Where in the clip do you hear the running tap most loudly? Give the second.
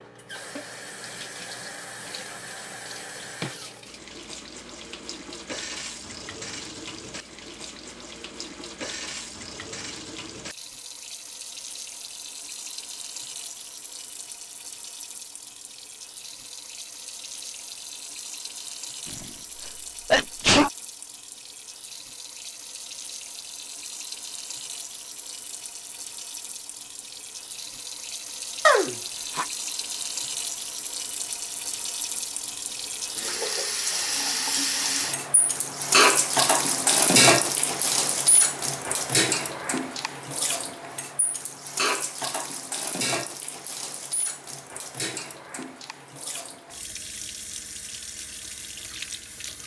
37 s.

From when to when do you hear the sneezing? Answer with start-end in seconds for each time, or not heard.
19.1-20.7, 28.6-29.4.